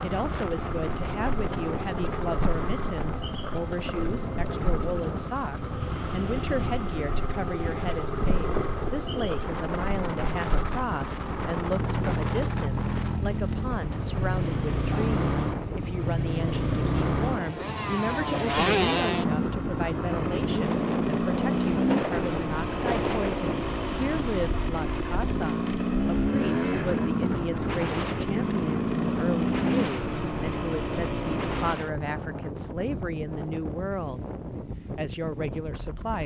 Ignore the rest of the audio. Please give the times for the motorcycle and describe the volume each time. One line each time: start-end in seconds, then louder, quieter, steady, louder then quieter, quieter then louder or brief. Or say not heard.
0.0-31.8 louder.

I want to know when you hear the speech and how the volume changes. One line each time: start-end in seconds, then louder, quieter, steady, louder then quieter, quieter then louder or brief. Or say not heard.
0.0-34.2 steady
35.0-36.2 brief.